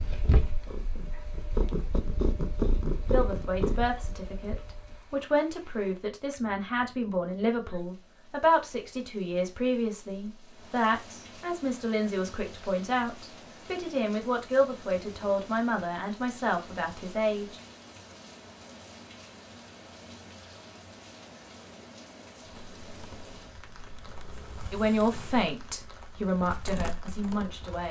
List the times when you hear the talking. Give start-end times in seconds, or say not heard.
3.1-17.6, 24.7-27.8.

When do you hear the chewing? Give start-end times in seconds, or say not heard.
not heard.